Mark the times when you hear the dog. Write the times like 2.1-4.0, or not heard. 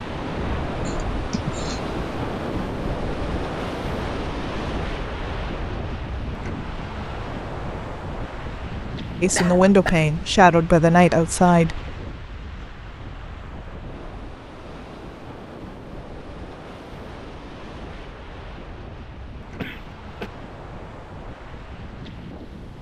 not heard.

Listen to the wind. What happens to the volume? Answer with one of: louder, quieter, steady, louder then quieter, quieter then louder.
quieter.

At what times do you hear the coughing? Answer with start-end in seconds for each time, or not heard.
0.8-1.8, 9.3-10.1, 19.6-20.3.